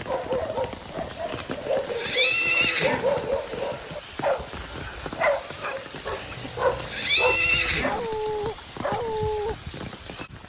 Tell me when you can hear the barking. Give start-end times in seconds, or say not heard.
0.1-9.6.